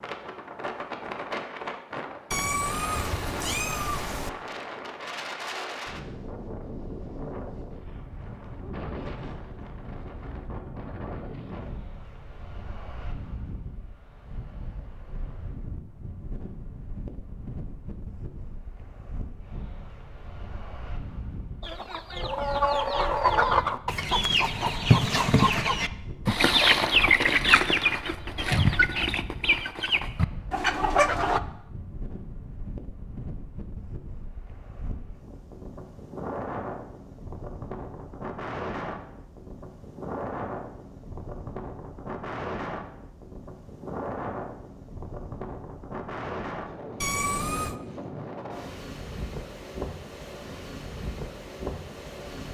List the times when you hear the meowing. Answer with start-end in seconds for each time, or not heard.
2.3-4.3, 47.0-47.8.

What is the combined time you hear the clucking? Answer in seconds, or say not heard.
10 s.